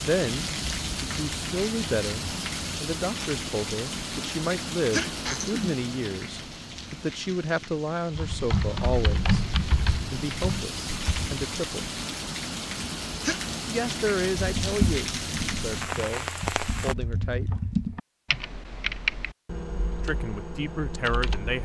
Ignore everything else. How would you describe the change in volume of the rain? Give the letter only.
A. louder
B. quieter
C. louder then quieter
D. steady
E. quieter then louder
E.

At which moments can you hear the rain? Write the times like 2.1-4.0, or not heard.
0.0-16.9.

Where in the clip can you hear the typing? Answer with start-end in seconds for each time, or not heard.
8.2-11.5, 14.3-21.6.